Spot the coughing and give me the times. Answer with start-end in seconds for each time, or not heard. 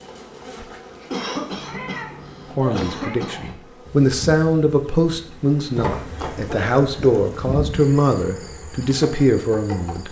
1.1-3.5, 6.2-7.2.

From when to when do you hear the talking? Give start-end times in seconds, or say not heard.
2.5-10.0.